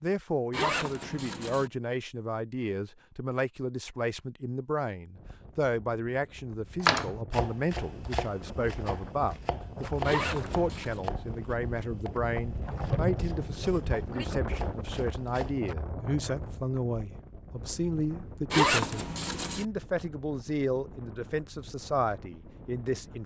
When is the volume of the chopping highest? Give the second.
7 s.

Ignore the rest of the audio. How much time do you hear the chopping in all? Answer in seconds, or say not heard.
9 s.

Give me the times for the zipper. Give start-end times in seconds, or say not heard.
0.5-1.7, 10.0-11.0, 18.5-19.6.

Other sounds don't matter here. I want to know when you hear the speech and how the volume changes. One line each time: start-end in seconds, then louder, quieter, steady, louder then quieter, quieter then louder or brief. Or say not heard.
0.0-23.2 steady.